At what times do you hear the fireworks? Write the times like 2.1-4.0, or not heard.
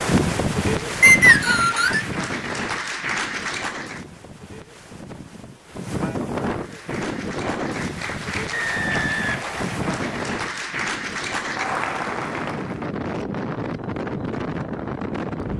not heard.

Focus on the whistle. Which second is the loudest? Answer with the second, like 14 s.
1 s.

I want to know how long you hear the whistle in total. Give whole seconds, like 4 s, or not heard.
3 s.